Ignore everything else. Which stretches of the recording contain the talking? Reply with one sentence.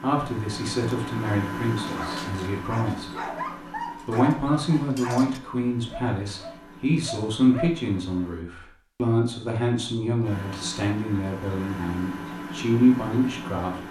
You can hear the talking from 0.0 to 3.0 s and from 4.0 to 13.8 s.